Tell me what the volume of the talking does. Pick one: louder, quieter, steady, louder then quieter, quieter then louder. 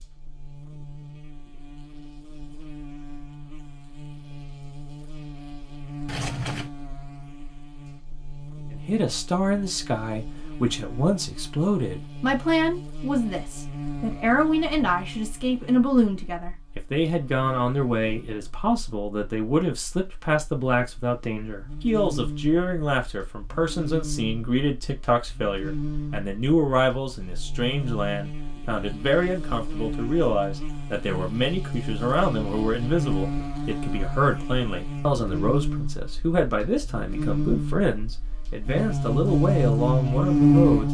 steady.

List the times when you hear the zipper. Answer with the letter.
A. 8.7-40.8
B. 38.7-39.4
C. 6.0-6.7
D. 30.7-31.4
C.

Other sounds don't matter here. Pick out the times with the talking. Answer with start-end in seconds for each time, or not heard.
8.7-40.8.